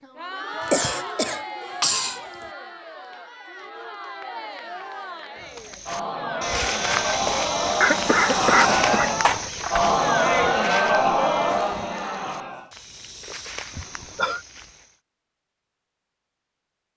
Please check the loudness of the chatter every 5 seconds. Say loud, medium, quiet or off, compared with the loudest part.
quiet, loud, loud, off.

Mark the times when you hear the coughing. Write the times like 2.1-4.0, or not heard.
0.7-2.5, 7.8-9.8, 13.8-14.4.